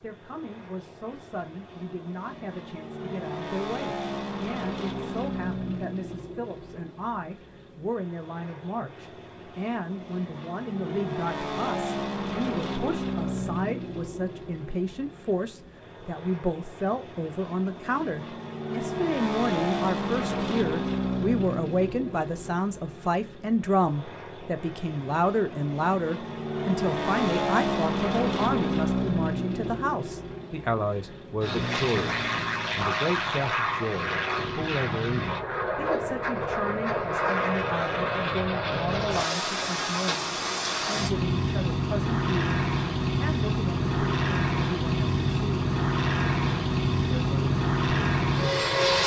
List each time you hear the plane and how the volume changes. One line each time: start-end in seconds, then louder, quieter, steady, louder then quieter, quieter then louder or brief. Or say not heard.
0.0-49.0 louder.